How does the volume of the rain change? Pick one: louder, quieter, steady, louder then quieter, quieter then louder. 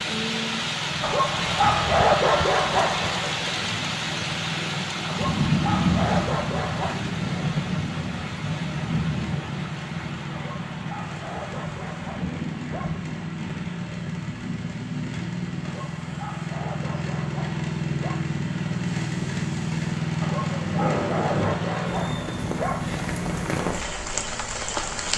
quieter then louder.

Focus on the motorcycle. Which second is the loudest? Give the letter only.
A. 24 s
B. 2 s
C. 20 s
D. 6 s
C.